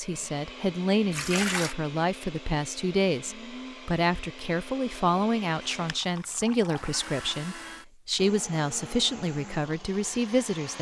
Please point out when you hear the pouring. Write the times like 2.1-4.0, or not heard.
1.1-1.8, 5.8-7.4.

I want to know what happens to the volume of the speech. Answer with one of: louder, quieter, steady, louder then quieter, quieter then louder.
steady.